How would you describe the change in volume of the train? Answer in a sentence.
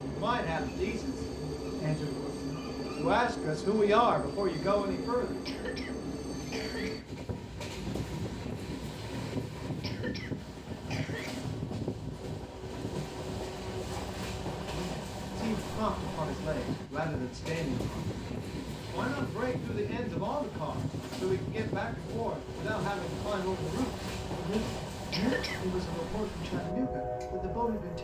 The volume of the train stays about the same.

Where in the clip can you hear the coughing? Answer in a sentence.
You can hear the coughing from 5.5 to 7.0 s, from 9.8 to 11.4 s and from 25.1 to 25.6 s.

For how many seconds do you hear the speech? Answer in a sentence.
You can hear the speech for 18 seconds altogether.